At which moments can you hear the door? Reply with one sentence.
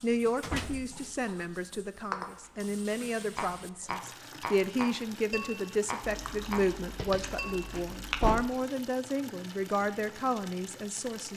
The door can be heard from 0.1 to 1.1 s and from 7.7 to 8.4 s.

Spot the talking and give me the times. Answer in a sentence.
You can hear the talking from 0.0 to 11.3 s.